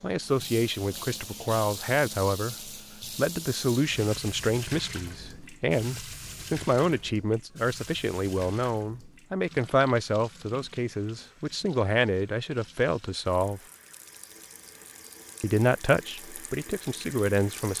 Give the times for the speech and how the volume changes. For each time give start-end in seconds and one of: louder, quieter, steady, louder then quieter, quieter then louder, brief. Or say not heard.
0.0-13.6 steady
15.4-17.7 brief.